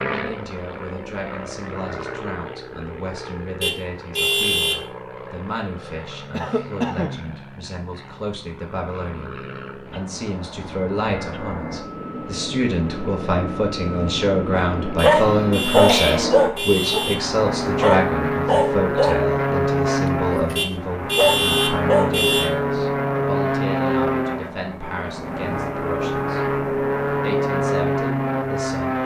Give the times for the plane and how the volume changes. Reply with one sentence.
The plane can be heard from 0.0 to 29.0 s, getting louder.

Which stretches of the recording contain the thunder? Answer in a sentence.
The thunder can't be heard in this clip.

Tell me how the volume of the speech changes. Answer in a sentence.
The loudness of the speech goes up, then down.